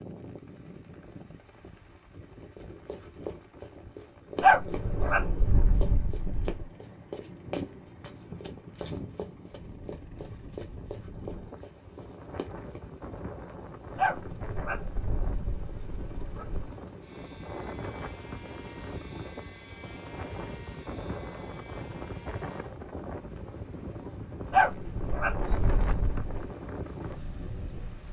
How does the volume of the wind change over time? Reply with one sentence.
The loudness of the wind goes up.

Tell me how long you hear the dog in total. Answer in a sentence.
You can hear the dog for 7 seconds altogether.